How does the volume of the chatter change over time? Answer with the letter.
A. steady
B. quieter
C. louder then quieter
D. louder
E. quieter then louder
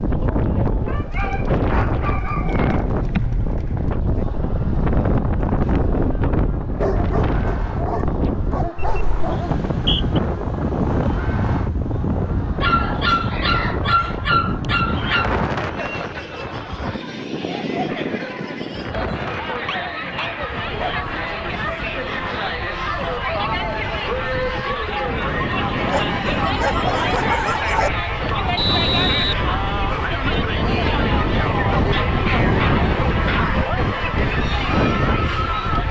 D.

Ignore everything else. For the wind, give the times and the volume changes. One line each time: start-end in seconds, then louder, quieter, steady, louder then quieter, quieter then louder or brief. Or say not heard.
0.0-35.8 quieter then louder.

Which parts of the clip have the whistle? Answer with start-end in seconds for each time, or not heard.
9.7-10.2, 28.6-29.4.